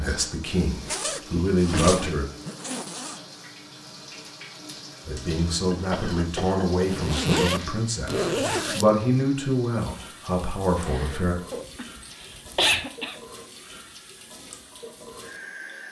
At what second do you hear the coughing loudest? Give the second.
13 s.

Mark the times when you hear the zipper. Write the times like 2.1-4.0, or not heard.
0.8-3.2, 6.8-8.9, 10.8-12.8.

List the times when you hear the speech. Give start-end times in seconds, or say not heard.
0.0-2.2, 5.0-11.3.